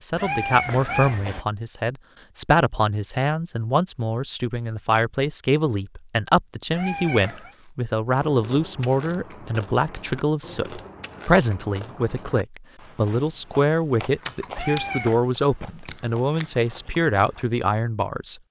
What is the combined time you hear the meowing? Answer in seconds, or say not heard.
3 s.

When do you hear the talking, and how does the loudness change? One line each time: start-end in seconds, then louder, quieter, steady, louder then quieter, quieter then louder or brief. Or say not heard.
0.0-18.4 steady.